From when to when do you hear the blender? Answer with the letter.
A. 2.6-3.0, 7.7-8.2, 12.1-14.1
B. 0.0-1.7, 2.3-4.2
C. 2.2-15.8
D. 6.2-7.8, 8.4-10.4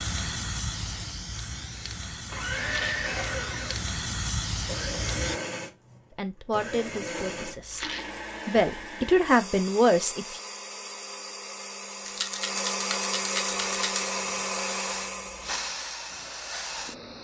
C.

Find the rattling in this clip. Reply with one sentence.
You can hear the rattling from 2.6 to 3.0 s, from 7.7 to 8.2 s and from 12.1 to 14.1 s.